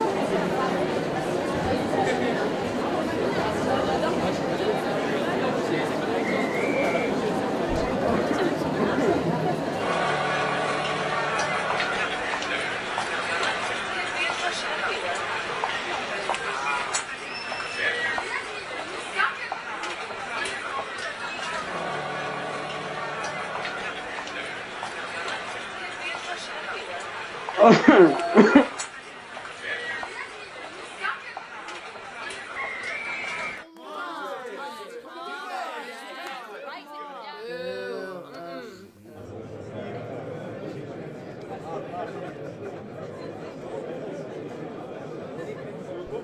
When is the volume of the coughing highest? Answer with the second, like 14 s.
28 s.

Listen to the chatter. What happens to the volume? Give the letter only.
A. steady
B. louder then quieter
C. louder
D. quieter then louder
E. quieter
E.